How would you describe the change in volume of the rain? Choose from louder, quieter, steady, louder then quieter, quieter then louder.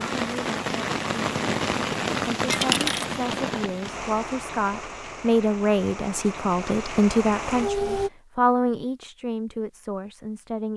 quieter then louder.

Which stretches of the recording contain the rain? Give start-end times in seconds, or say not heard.
0.0-8.1.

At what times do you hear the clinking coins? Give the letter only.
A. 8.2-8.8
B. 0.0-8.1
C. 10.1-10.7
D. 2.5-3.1
D.